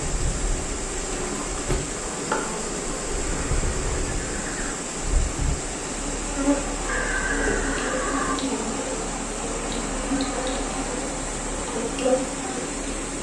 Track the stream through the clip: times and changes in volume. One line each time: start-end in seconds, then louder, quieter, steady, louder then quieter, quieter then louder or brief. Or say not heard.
0.0-13.1 steady.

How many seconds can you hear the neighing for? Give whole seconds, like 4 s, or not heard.
3 s.